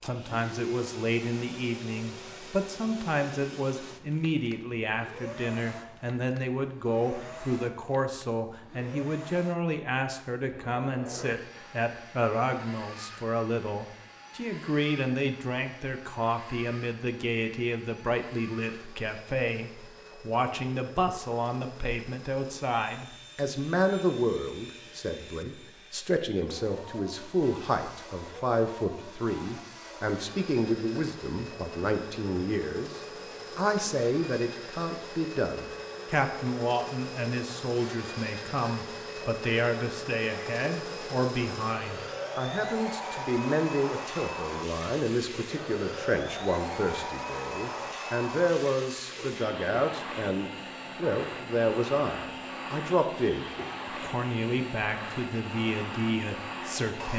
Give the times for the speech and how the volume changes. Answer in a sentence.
The speech can be heard from 0.0 to 57.1 s, at a steady volume.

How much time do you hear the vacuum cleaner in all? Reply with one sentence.
You can hear the vacuum cleaner for 57 seconds altogether.